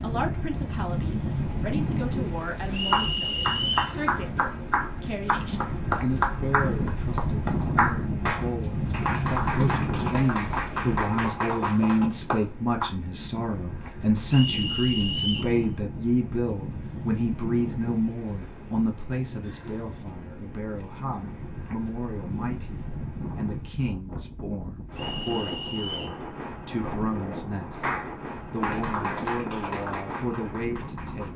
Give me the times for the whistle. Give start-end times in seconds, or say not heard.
2.7-4.0, 14.3-15.6, 24.9-26.2.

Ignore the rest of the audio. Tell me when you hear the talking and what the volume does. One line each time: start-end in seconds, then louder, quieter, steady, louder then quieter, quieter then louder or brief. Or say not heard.
0.0-31.3 louder then quieter.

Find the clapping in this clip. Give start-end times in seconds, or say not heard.
2.9-12.9, 27.8-31.3.